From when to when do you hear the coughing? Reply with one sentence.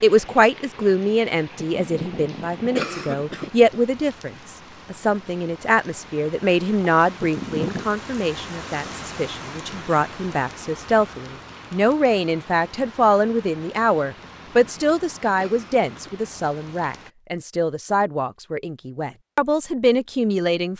The coughing can be heard from 1.6 to 3.5 s, from 7.2 to 7.8 s and from 14.2 to 16.1 s.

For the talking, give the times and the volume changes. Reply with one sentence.
The talking can be heard from 0.0 to 20.7 s, at a steady volume.